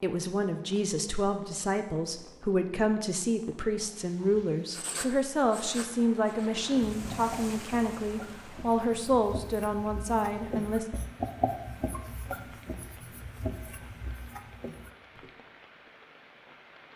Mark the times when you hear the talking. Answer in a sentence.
You can hear the talking from 0.0 to 10.8 s.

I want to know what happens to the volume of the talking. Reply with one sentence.
The volume of the talking stays about the same.